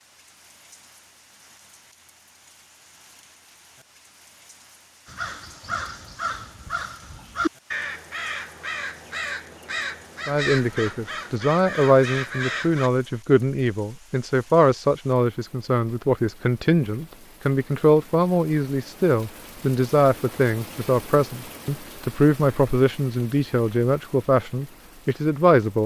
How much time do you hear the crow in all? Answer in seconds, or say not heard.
8 s.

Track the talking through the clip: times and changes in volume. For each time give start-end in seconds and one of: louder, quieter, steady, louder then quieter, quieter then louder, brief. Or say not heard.
10.2-25.8 steady.